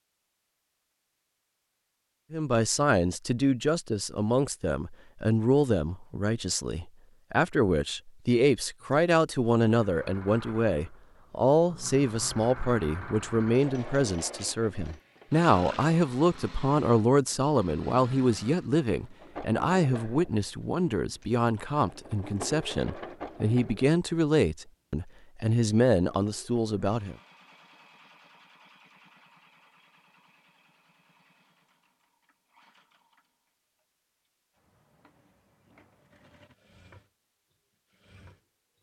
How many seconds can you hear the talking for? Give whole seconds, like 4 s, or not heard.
25 s.